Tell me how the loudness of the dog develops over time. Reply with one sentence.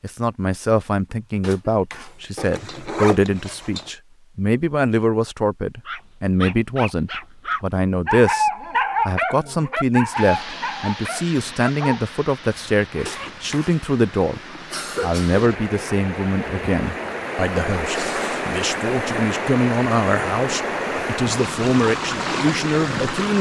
The loudness of the dog goes up, then down.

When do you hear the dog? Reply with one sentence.
The dog can be heard from 5.8 to 12.1 s.